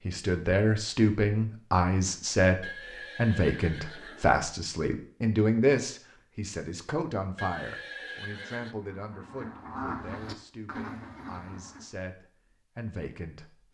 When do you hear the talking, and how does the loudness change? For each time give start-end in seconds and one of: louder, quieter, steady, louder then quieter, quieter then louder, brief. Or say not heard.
0.1-13.7 quieter.